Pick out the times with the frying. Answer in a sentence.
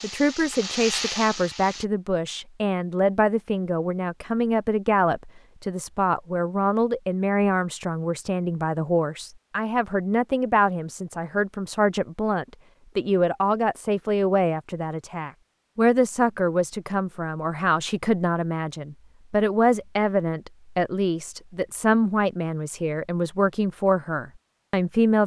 The frying can be heard from 0.0 to 1.9 s.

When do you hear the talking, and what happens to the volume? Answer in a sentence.
You can hear the talking from 0.0 to 25.2 s, at a steady volume.